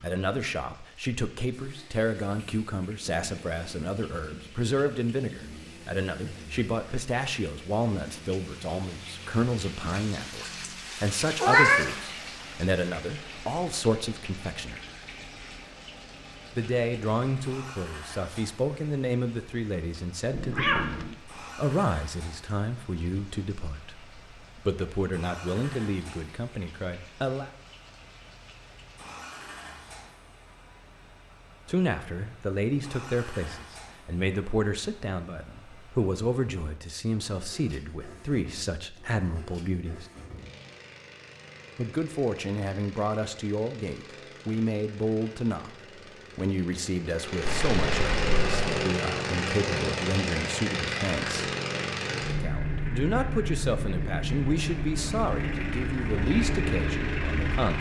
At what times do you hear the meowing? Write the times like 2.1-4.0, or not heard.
11.4-11.9, 20.3-21.1, 47.5-48.5.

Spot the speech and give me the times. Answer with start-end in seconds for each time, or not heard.
0.0-14.8, 16.6-27.5, 31.6-40.0, 41.8-45.7, 46.4-51.5, 52.3-57.7.